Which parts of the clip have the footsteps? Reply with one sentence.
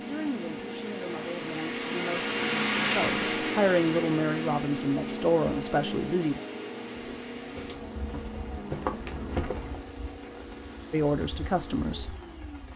The footsteps can be heard from 7.2 to 9.8 s.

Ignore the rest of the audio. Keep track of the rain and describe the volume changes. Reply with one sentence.
The loudness of the rain goes down.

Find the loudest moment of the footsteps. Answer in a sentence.
The volume of the footsteps peaks at 9 seconds.